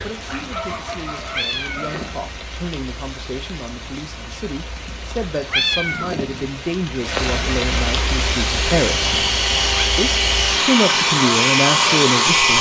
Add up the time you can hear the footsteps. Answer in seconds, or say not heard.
not heard.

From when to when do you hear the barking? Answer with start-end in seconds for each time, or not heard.
0.2-2.1.